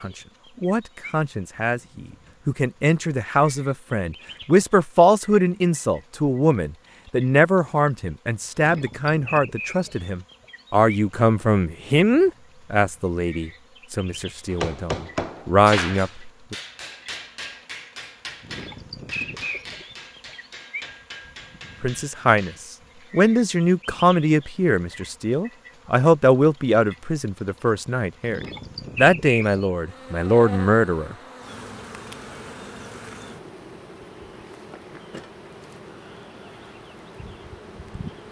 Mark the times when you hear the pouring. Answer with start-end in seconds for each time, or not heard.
not heard.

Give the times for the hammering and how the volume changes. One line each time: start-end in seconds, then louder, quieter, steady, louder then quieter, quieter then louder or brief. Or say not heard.
14.5-23.1 quieter.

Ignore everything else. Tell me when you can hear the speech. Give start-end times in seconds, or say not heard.
0.0-16.6, 21.8-31.1.